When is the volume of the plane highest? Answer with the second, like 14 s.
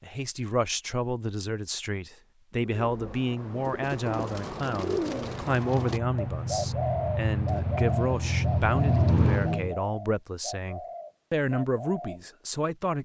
9 s.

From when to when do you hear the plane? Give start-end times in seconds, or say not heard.
5.1-9.8.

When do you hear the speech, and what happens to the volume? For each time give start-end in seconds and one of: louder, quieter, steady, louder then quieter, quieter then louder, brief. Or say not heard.
0.0-13.0 steady.